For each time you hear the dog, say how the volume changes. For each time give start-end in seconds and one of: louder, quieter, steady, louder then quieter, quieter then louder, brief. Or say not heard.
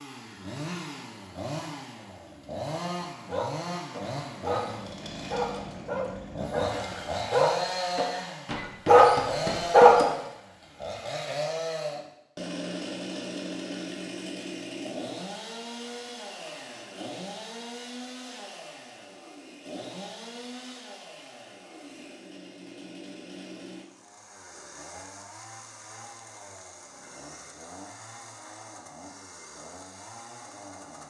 3.2-10.1 louder.